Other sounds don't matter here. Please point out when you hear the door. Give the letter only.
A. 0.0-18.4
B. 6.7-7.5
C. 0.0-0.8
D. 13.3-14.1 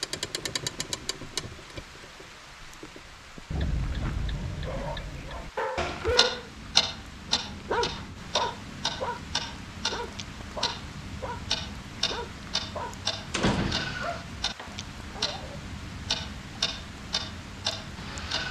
D.